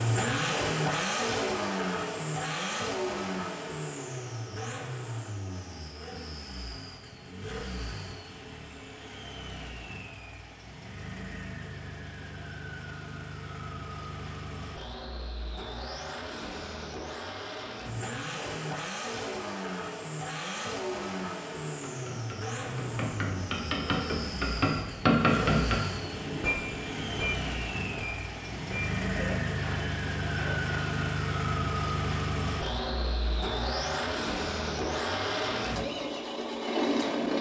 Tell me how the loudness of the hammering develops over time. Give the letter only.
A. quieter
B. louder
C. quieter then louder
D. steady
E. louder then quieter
E.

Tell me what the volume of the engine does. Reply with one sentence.
The loudness of the engine goes down, then up.